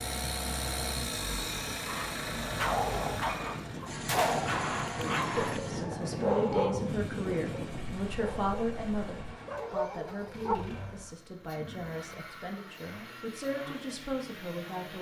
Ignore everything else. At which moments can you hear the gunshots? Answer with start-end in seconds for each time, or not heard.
4.0-5.6.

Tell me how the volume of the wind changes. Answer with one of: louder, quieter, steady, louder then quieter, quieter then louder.
louder.